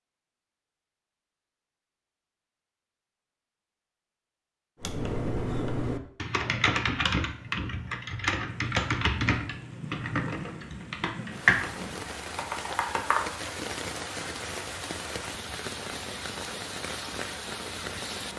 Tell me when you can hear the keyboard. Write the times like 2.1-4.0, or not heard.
4.8-13.3.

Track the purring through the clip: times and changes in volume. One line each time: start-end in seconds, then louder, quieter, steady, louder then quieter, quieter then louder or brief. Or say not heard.
not heard.